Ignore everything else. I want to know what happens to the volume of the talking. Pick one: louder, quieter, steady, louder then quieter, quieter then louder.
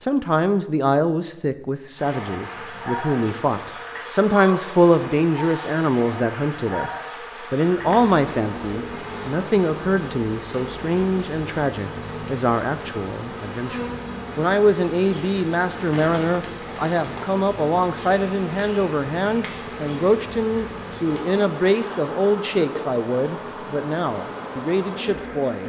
steady.